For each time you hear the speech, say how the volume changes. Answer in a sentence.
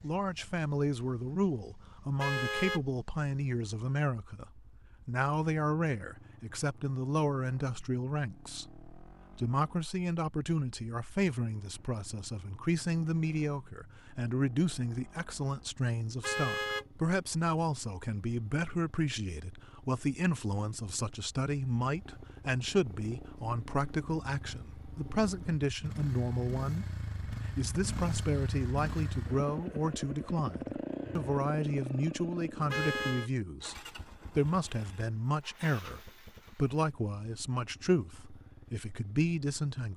You can hear the speech from 0.0 to 33.8 s, at a steady volume; and from 34.4 to 39.9 s, at a steady volume.